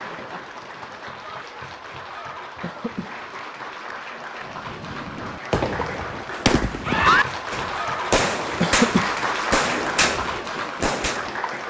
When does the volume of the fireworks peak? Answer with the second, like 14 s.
7 s.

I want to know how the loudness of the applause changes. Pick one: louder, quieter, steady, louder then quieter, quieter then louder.
louder.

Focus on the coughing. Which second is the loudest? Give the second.
9 s.